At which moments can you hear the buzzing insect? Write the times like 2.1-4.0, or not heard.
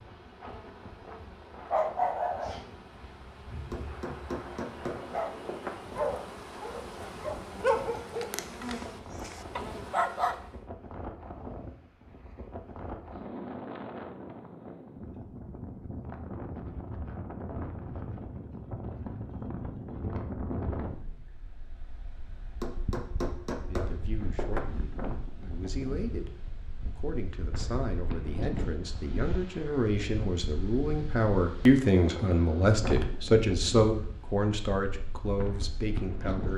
0.0-10.7.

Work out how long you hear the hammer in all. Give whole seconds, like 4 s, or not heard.
4 s.